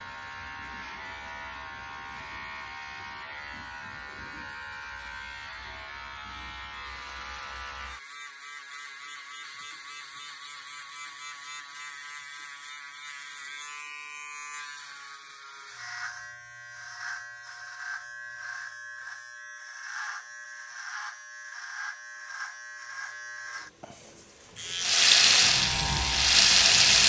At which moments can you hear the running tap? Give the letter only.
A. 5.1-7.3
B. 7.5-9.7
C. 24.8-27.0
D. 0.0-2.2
C.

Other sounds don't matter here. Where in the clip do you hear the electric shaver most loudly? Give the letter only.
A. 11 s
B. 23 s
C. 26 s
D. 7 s
C.